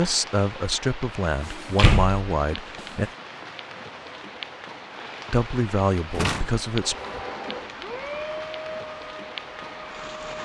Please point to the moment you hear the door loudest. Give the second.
2 s.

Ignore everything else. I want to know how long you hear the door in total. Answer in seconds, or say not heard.
2 s.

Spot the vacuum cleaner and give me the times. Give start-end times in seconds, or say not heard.
6.7-10.3.